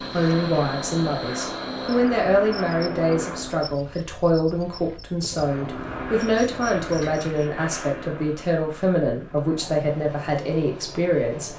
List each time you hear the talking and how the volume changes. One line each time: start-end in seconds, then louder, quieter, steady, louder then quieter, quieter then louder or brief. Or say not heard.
0.0-11.5 steady.